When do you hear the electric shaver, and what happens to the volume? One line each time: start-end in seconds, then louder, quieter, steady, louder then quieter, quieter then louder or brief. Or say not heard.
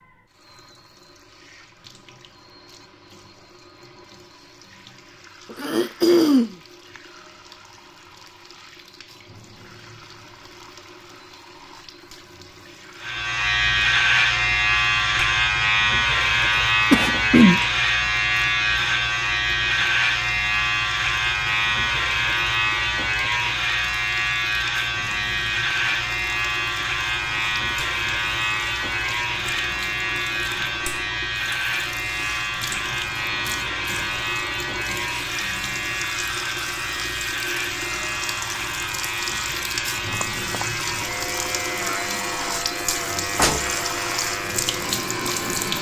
13.0-45.7 quieter.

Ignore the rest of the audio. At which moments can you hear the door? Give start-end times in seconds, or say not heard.
43.4-43.8.